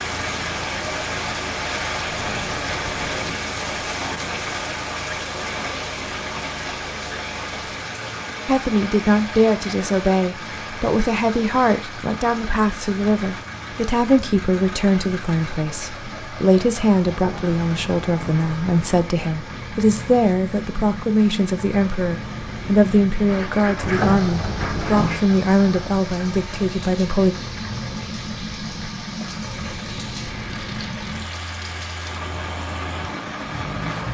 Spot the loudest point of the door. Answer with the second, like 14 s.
24 s.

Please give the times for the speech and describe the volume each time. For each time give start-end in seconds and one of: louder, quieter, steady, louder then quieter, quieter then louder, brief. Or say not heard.
8.4-27.4 steady.